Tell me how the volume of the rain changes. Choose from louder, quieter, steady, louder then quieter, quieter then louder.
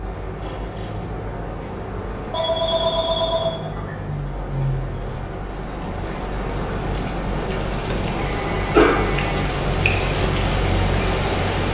louder.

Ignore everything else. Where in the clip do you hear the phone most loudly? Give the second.
9 s.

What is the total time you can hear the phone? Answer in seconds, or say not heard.
3 s.